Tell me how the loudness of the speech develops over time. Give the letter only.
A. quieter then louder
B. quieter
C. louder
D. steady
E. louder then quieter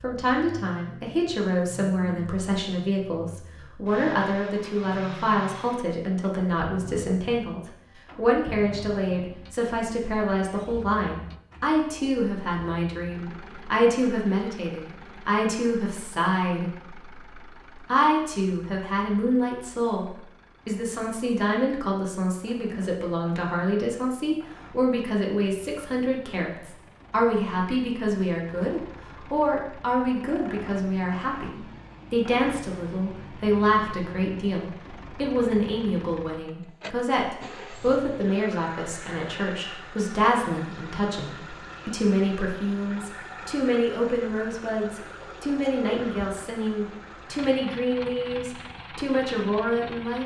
D.